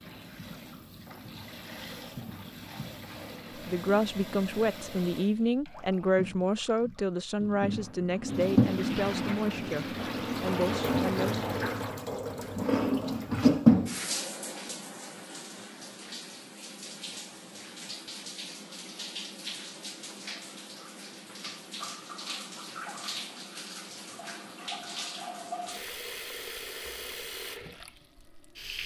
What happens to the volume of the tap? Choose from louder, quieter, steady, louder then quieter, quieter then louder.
louder then quieter.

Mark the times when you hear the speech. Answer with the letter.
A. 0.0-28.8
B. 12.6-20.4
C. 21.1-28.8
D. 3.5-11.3
D.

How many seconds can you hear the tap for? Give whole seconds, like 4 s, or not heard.
29 s.